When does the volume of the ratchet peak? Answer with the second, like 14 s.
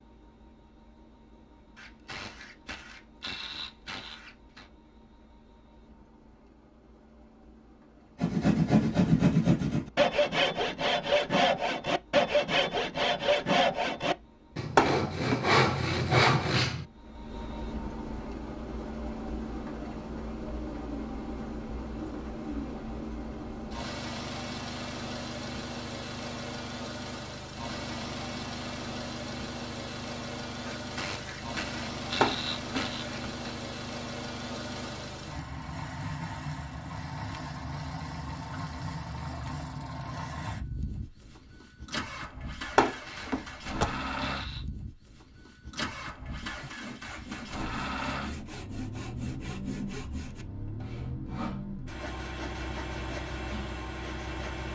32 s.